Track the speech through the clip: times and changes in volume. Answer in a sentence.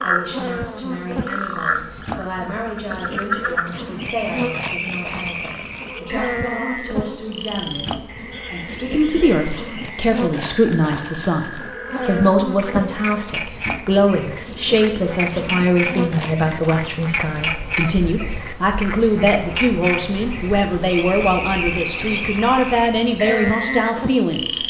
You can hear the speech from 0.0 to 24.6 s, getting louder.